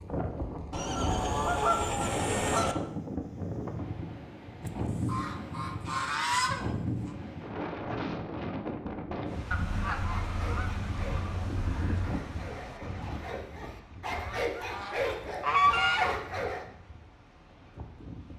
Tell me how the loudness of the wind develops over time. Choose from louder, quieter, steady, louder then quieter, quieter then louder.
quieter.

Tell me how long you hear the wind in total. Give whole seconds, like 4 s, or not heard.
18 s.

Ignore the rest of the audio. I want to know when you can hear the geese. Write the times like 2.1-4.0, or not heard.
0.7-2.8, 4.7-6.7, 9.5-12.1, 14.2-16.1.